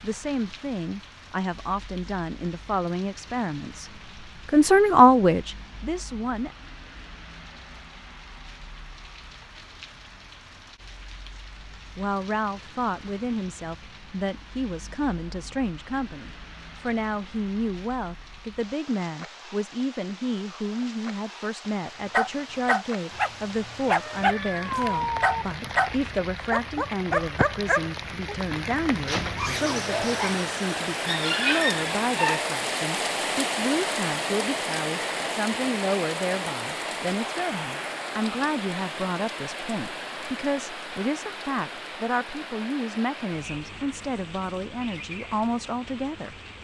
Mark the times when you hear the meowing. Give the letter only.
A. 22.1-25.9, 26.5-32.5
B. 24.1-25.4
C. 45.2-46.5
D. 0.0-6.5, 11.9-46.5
B.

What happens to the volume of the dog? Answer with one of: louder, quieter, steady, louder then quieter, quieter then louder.
quieter then louder.